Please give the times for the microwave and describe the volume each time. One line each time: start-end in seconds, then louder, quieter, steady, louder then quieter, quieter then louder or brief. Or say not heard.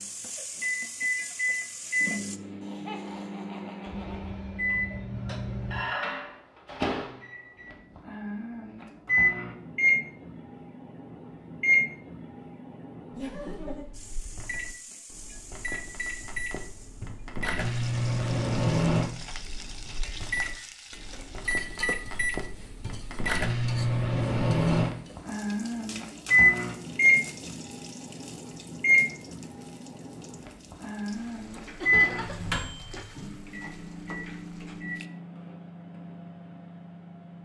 0.0-37.4 louder then quieter.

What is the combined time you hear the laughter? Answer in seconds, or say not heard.
3 s.